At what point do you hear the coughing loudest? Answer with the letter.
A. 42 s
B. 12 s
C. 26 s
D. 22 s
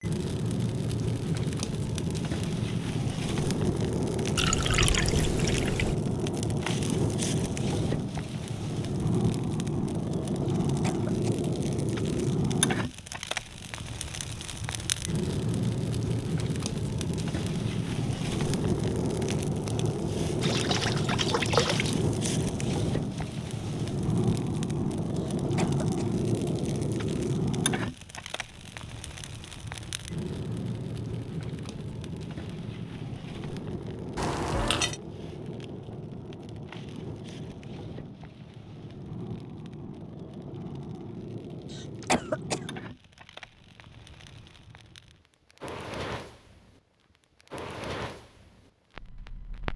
A.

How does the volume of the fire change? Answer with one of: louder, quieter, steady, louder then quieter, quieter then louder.
quieter.